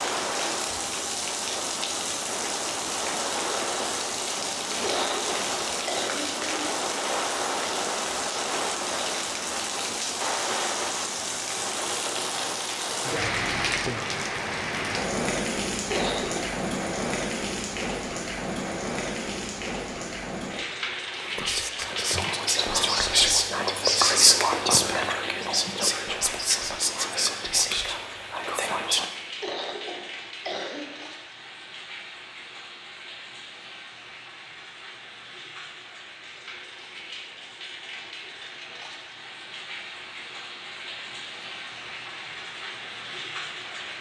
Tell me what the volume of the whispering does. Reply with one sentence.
The volume of the whispering goes up, then down.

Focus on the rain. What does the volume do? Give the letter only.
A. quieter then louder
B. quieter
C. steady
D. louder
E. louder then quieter
B.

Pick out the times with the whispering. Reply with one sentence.
You can hear the whispering from 21.2 to 29.1 s.